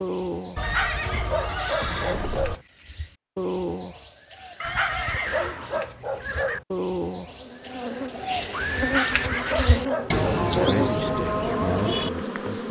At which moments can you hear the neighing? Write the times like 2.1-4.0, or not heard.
0.6-2.5, 4.6-6.6, 8.5-9.9.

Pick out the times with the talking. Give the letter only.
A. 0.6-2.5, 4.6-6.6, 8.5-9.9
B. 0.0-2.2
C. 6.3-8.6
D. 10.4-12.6
D.